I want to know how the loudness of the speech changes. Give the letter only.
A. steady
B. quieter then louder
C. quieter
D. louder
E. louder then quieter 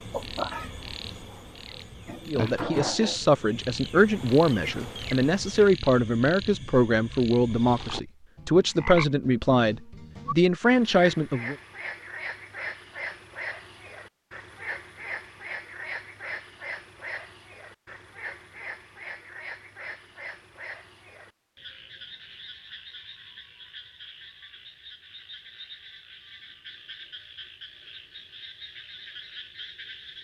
A.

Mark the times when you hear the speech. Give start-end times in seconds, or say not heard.
2.2-11.6.